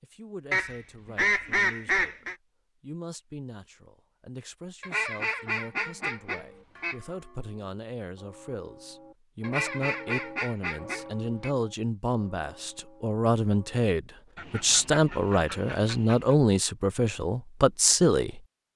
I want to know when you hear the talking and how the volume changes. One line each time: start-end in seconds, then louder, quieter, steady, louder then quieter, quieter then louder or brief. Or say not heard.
0.0-18.4 louder.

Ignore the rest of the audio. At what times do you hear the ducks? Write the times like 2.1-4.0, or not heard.
0.5-2.4, 4.8-7.0, 9.4-11.5, 14.3-16.4.